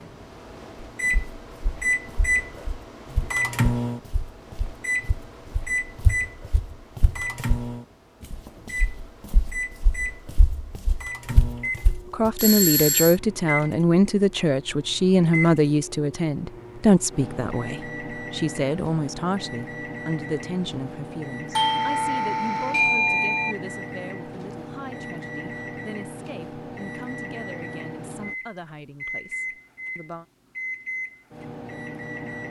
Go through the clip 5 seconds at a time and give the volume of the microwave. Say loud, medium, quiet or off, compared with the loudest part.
loud, medium, medium, medium, medium, medium, medium.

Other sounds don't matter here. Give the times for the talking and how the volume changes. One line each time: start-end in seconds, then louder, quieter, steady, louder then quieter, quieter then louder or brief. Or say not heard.
12.1-30.2 quieter.